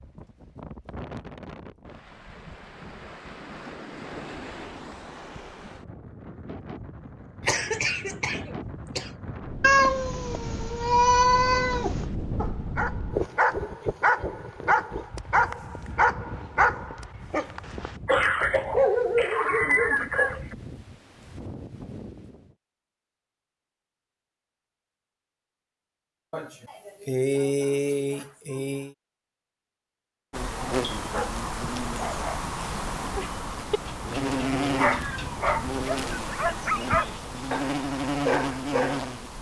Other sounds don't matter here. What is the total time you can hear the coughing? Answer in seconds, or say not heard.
7 s.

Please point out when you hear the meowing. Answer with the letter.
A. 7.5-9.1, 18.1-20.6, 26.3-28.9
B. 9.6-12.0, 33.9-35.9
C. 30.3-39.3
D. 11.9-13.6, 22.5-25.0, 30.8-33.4
B.